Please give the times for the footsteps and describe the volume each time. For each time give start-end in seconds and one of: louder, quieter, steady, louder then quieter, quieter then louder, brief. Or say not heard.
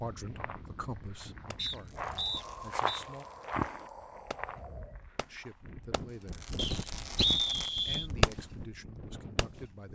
0.1-5.8 louder then quieter.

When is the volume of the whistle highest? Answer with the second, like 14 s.
7 s.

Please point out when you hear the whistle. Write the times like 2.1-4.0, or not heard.
1.6-3.0, 6.5-8.1.